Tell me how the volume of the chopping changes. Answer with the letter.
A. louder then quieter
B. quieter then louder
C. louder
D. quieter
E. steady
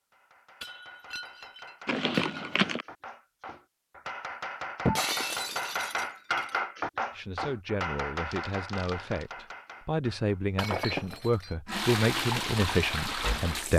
A.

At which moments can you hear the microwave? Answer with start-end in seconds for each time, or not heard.
not heard.